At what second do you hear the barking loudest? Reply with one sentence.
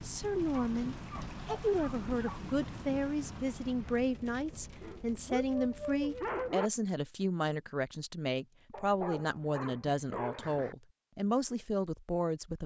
The loudest moment of the barking is at 6 seconds.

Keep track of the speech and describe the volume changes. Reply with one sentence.
The volume of the speech stays about the same.